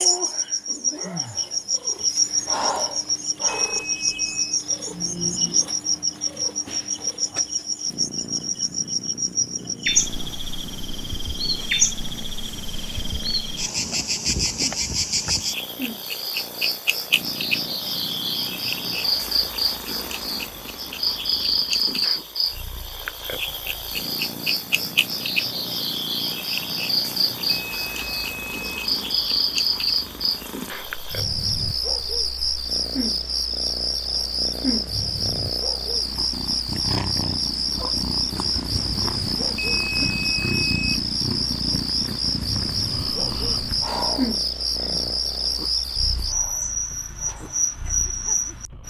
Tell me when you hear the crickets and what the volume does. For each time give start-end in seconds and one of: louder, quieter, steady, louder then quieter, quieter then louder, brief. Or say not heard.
0.0-48.8 steady.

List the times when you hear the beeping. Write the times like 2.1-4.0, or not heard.
3.5-4.6, 27.6-28.9, 39.5-41.0.